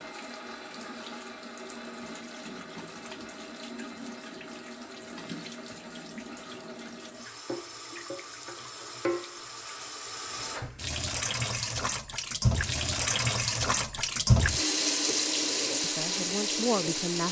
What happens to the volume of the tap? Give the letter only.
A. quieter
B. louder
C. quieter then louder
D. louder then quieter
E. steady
B.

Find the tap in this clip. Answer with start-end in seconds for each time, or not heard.
0.0-17.2.